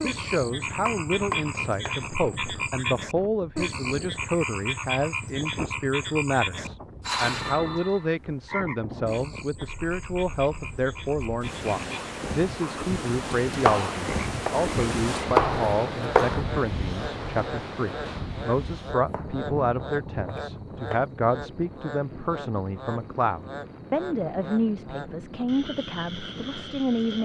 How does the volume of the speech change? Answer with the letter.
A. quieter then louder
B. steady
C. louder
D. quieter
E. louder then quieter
B.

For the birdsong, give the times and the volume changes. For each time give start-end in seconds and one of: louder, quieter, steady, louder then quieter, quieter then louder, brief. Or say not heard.
not heard.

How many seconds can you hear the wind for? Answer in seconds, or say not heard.
27 s.